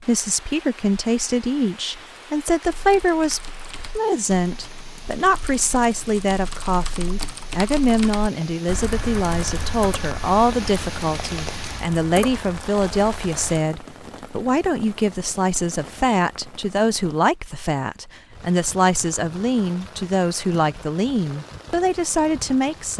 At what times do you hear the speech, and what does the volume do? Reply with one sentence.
You can hear the speech from 0.1 to 22.9 s, at a steady volume.